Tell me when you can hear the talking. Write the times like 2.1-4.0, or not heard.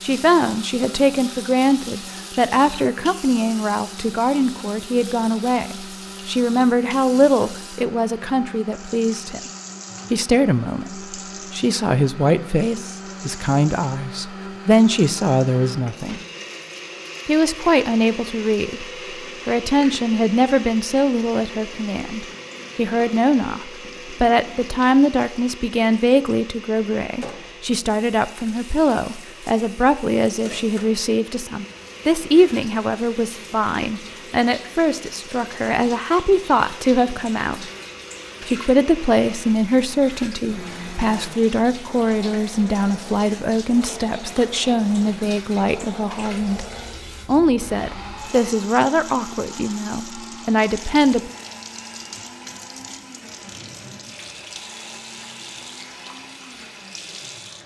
0.0-9.5, 10.1-16.2, 17.2-18.9, 19.4-37.6, 38.5-46.6, 47.2-51.3.